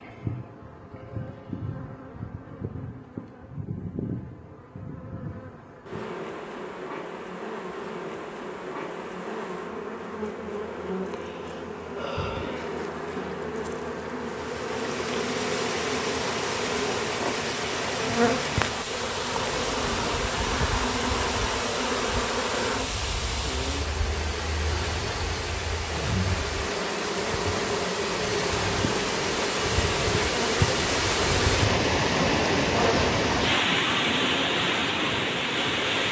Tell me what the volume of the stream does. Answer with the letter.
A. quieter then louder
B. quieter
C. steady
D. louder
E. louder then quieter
D.